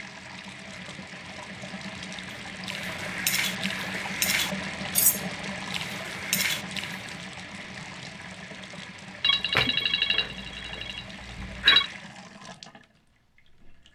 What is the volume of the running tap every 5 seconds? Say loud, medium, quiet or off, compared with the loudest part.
loud, loud, medium.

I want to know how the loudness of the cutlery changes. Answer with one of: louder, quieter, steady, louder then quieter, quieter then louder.
quieter then louder.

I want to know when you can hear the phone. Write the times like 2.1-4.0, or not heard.
9.2-11.9.